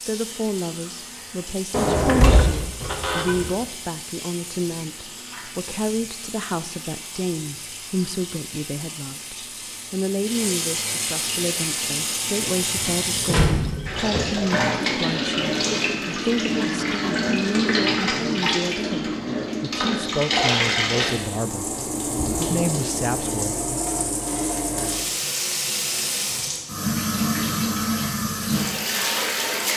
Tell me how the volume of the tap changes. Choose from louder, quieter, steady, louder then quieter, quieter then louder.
louder.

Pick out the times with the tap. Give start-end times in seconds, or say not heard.
0.0-29.7.